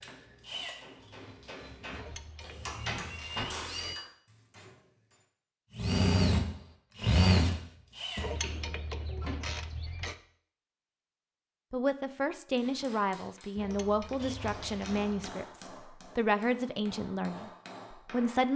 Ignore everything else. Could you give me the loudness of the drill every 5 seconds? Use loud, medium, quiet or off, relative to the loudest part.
quiet, loud, off, off.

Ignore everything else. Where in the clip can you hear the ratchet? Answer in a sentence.
The ratchet can be heard from 1.9 to 4.0 s, from 8.2 to 10.2 s and from 13.6 to 15.2 s.